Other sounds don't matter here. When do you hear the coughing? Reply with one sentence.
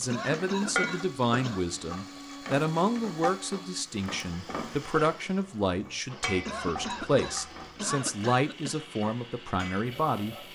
You can hear the coughing from 0.1 to 1.6 s and from 6.5 to 8.8 s.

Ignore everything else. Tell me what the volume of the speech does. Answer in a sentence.
The volume of the speech stays about the same.